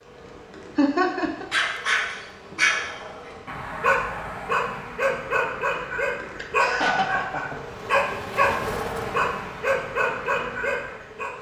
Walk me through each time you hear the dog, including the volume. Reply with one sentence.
You can hear the dog from 1.5 to 11.3 s, at a steady volume.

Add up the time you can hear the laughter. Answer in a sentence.
The laughter can be heard for 2 seconds in total.